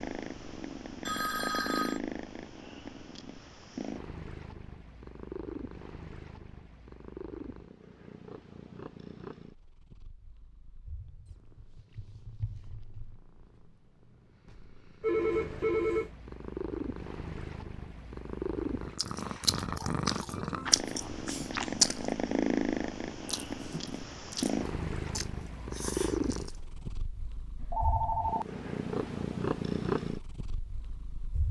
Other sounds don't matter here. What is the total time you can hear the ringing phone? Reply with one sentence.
You can hear the ringing phone for 4 seconds altogether.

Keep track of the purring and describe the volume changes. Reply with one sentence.
The volume of the purring goes down, then up.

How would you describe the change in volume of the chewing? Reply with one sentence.
The volume of the chewing goes up, then down.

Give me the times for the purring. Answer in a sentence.
The purring can be heard from 0.0 to 31.4 s.